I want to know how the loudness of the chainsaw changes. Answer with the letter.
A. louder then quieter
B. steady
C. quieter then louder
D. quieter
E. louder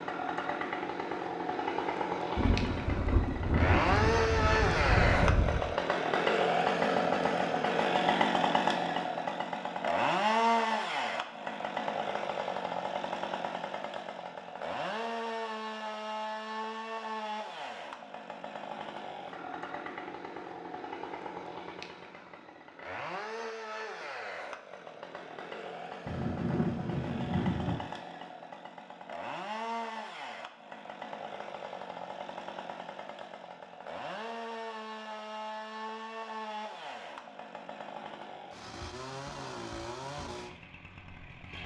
D.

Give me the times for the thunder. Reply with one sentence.
The thunder can be heard from 2.4 to 5.8 s and from 26.1 to 27.8 s.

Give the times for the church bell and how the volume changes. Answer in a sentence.
You can't hear the church bell here.